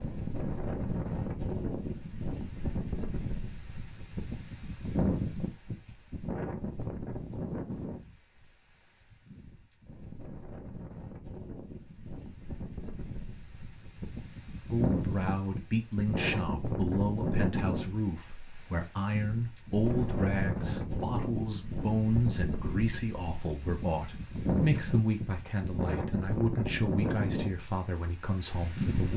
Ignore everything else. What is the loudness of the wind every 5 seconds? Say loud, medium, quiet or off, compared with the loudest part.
loud, loud, medium, loud, loud, loud.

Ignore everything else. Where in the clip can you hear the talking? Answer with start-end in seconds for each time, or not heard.
14.7-29.1.